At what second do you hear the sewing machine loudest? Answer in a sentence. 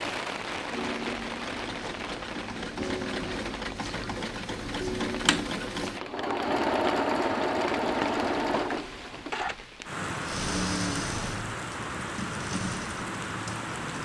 The loudest moment of the sewing machine is at 7 seconds.